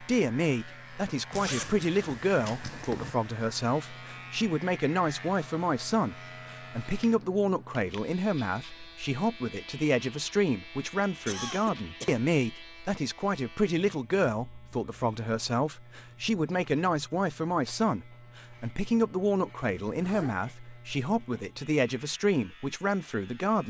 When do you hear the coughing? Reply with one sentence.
The coughing can be heard from 11.2 to 12.2 s.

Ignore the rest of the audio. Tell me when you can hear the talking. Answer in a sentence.
The talking can be heard from 0.0 to 23.6 s.